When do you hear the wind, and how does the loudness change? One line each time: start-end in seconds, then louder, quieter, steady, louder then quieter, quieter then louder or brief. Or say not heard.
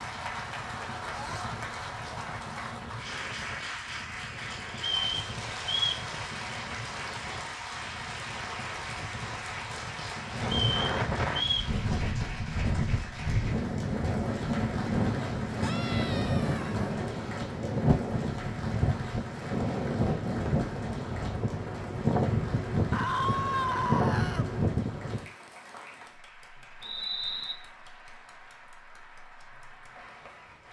0.0-25.3 louder.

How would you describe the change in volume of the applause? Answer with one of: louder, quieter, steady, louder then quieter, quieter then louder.
quieter.